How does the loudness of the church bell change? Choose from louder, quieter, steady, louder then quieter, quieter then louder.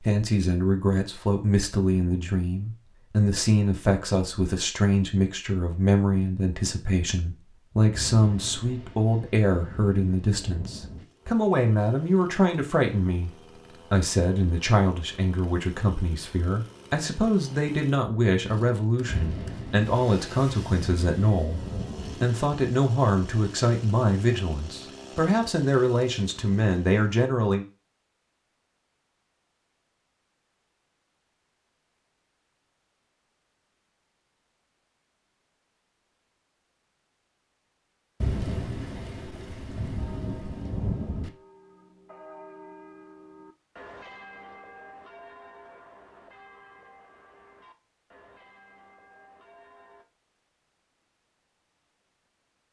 louder then quieter.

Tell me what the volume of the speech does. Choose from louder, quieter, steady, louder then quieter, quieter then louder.
steady.